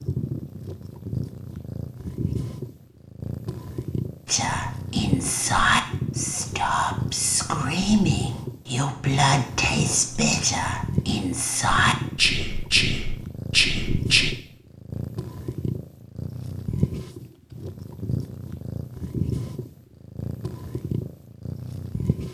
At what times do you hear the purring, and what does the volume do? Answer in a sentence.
You can hear the purring from 0.0 to 22.2 s, at a steady volume.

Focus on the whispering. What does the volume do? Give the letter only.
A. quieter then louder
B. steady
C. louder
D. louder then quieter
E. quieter
B.